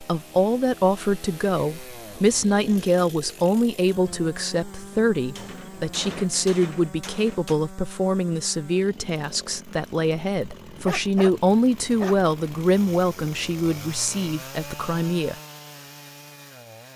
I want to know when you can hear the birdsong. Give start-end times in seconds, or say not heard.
not heard.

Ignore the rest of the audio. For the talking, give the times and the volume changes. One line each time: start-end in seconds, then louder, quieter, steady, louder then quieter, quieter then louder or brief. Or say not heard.
0.0-15.3 steady.